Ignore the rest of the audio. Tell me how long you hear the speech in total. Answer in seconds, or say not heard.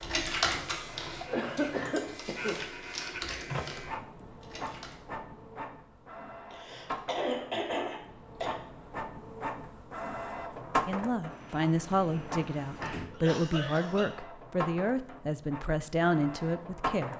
6 s.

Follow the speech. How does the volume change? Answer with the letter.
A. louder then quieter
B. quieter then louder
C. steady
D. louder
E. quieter
C.